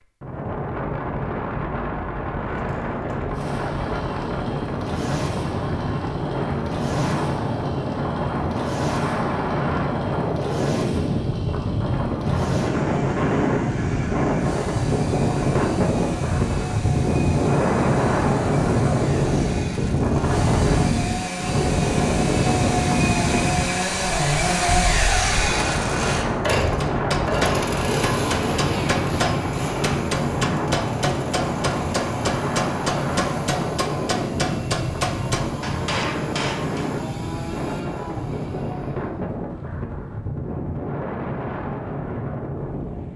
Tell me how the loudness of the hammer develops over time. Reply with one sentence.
The loudness of the hammer stays about the same.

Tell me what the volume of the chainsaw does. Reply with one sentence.
The volume of the chainsaw goes up, then down.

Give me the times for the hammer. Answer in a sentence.
The hammer can be heard from 26.8 to 36.9 s.